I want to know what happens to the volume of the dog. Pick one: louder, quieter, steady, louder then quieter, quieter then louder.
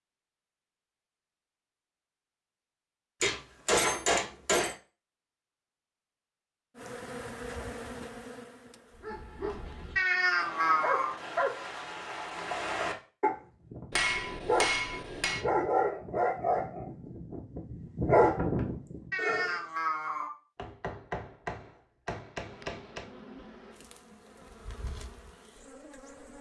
louder.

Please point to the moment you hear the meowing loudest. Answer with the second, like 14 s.
10 s.